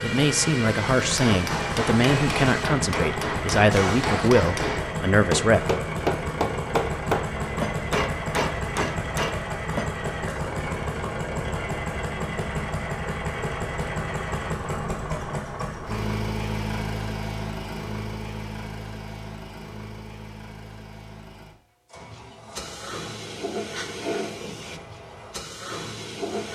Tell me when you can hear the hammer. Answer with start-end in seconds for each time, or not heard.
1.1-9.9.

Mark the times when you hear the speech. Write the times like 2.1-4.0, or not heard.
0.0-5.7.